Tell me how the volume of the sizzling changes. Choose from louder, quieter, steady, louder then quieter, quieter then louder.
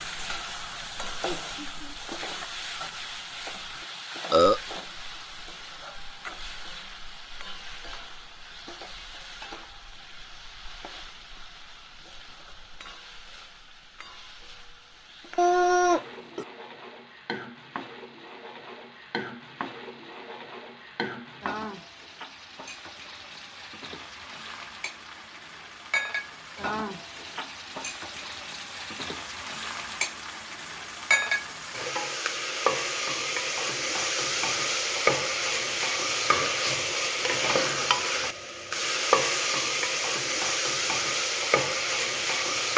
quieter then louder.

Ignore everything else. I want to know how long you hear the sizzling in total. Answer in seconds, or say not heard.
43 s.